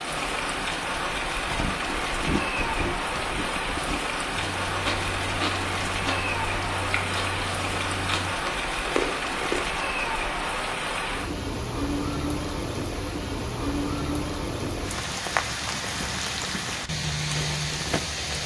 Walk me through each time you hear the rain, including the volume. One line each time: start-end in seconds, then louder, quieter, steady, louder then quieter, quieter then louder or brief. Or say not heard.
0.0-18.4 steady.